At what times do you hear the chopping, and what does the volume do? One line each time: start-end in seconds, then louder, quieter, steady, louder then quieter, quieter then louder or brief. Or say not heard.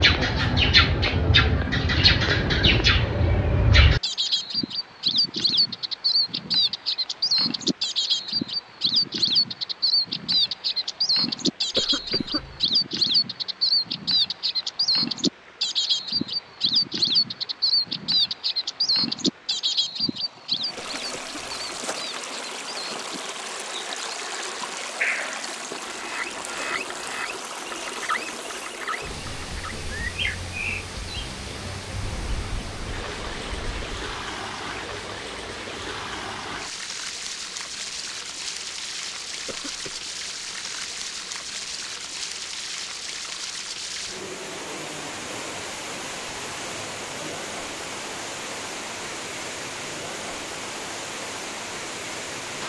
not heard.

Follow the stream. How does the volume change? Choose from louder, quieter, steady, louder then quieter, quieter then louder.
louder.